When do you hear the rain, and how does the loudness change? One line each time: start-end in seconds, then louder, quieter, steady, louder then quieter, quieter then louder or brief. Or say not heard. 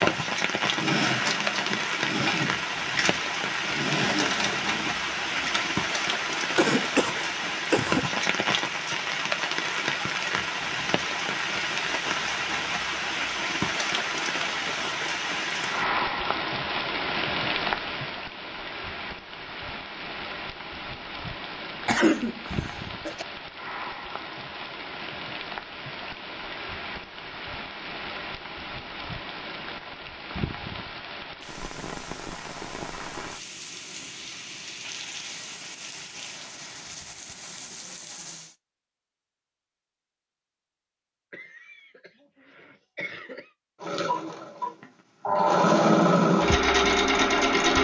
0.0-38.5 quieter.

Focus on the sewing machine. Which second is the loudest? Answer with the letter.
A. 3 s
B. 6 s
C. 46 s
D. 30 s
C.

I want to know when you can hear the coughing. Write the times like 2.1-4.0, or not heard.
6.5-8.2, 21.9-23.2, 41.3-43.5.